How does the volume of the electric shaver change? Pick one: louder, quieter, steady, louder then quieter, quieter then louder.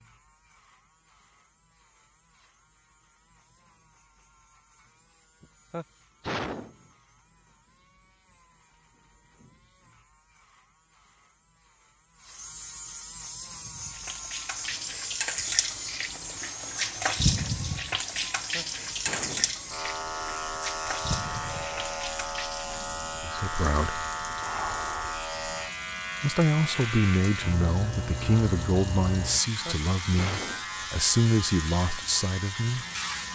louder.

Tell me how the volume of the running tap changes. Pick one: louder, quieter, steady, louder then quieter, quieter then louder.
quieter.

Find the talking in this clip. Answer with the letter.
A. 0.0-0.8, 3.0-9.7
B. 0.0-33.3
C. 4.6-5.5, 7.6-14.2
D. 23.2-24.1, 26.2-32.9
D.